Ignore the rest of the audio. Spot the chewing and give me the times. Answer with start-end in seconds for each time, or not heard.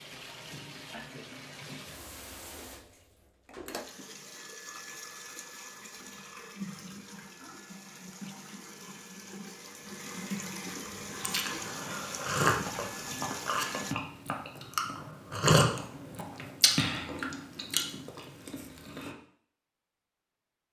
11.1-19.1.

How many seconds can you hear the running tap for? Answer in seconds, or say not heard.
14 s.